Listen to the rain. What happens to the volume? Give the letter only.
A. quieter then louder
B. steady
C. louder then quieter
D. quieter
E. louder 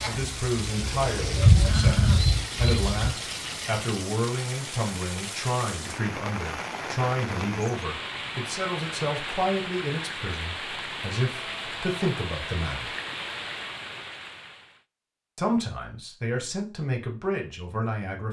B.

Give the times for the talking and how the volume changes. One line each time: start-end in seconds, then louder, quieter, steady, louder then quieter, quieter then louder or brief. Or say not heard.
0.0-12.9 steady
15.3-18.2 brief.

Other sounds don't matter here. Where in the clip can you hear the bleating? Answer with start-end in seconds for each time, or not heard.
0.0-3.1.